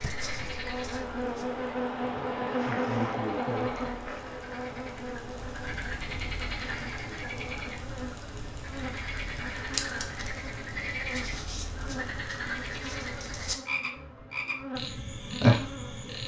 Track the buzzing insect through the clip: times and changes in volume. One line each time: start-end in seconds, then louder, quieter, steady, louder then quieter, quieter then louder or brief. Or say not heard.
0.0-16.2 quieter.